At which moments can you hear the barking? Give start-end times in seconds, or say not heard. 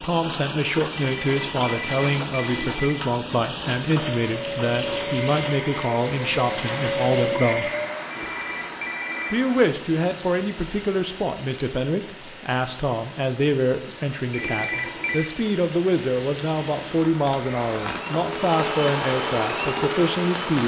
not heard.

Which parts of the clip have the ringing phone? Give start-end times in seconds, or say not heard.
0.9-3.0, 8.1-9.6, 14.3-15.3.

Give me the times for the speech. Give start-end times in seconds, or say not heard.
0.0-7.7, 9.3-20.6.